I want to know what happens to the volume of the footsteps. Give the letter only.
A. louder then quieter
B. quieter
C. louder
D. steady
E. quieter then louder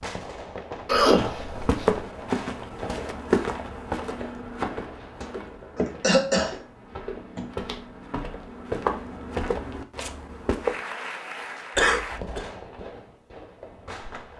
E.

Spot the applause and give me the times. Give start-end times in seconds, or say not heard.
10.6-12.2.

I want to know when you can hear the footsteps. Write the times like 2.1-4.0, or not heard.
1.2-10.8.